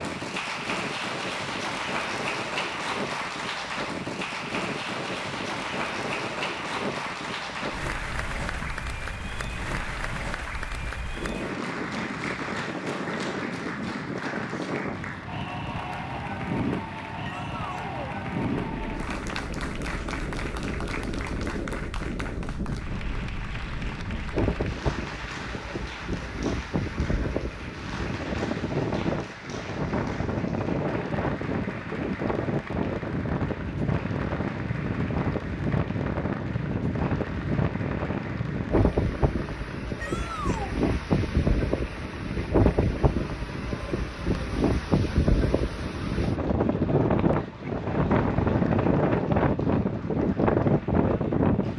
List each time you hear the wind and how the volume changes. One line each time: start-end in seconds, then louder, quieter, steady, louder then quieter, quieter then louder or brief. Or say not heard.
0.0-51.7 louder.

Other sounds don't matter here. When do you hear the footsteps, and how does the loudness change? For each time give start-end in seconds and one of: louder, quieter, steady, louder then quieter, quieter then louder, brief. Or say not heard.
not heard.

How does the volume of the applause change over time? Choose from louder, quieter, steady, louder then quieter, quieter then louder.
quieter.